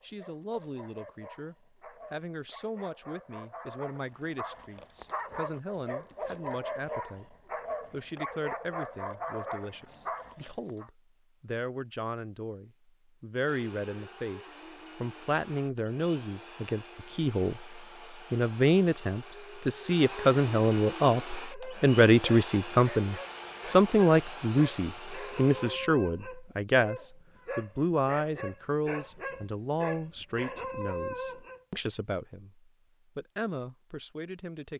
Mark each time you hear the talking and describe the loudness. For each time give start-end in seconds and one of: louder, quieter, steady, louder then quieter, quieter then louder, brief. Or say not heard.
0.0-34.7 louder then quieter.